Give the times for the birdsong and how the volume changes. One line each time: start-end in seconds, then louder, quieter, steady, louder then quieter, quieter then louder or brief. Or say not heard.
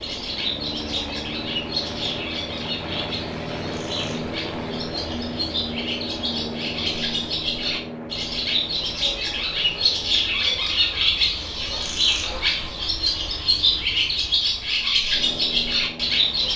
0.0-16.5 louder.